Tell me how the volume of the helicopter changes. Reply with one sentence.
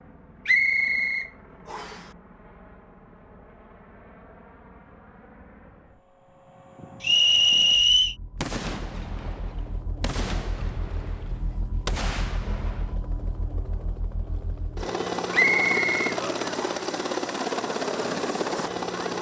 The volume of the helicopter goes up.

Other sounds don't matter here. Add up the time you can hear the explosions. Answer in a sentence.
The explosions can be heard for 5 seconds in total.